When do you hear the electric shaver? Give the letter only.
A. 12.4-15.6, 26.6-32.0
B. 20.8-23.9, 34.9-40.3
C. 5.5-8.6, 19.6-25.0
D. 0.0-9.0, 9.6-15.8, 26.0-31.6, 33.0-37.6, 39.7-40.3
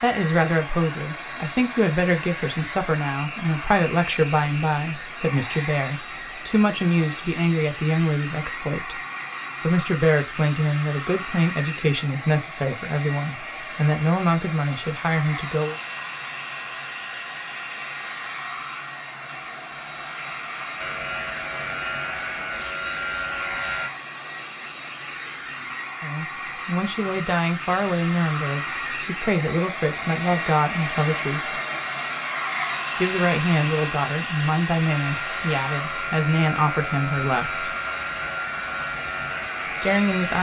B.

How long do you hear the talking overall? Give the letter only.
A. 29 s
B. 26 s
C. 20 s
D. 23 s
B.